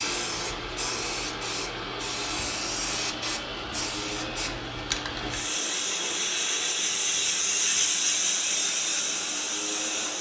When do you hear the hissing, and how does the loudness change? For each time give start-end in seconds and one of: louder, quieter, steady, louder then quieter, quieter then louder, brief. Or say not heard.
0.0-10.1 louder.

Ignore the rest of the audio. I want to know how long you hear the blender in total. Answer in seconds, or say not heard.
10 s.